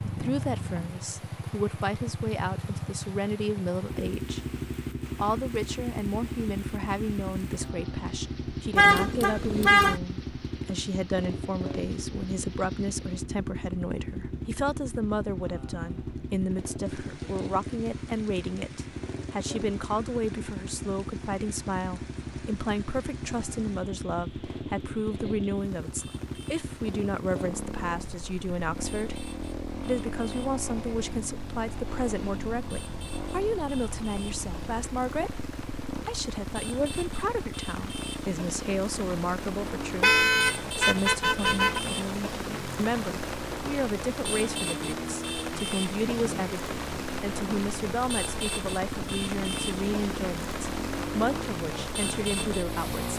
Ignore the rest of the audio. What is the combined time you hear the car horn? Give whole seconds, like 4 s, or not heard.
3 s.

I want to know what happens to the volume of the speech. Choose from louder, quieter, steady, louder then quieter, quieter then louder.
steady.